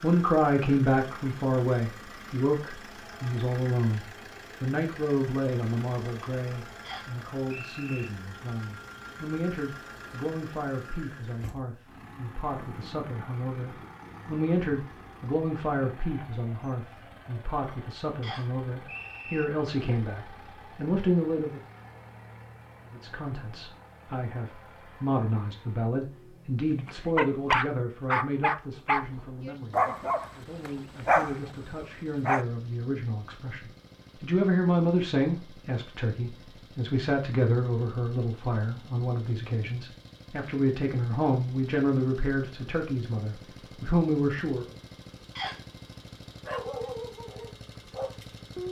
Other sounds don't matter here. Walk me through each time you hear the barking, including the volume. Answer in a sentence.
The barking can be heard from 26.8 to 32.5 s, getting quieter then louder; and briefly from 46.5 to 48.6 s.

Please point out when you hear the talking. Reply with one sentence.
You can hear the talking from 0.0 to 21.6 s and from 22.9 to 44.8 s.